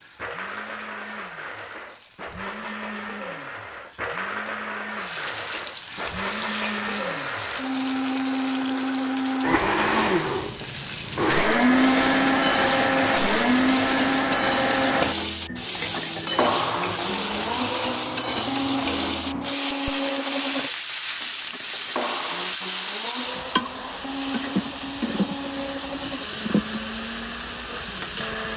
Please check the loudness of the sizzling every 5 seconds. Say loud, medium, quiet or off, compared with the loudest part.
quiet, medium, loud, loud, loud, loud.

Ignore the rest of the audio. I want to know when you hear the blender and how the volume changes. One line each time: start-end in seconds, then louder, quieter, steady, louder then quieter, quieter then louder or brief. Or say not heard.
0.0-28.5 louder then quieter.